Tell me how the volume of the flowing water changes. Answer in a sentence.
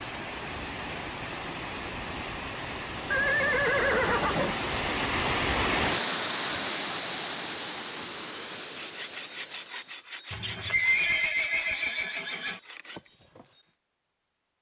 The loudness of the flowing water goes up, then down.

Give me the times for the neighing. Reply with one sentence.
The neighing can be heard from 3.1 to 4.5 s and from 10.3 to 12.6 s.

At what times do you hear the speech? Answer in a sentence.
You can't hear the speech here.